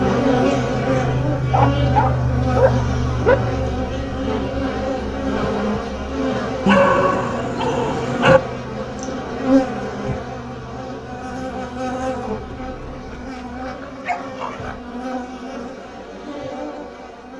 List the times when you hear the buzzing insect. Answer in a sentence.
You can hear the buzzing insect from 0.0 to 17.3 s.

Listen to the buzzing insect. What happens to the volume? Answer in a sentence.
The volume of the buzzing insect goes down.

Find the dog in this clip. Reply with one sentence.
You can hear the dog from 1.5 to 3.4 s, from 6.7 to 8.4 s and from 12.2 to 14.8 s.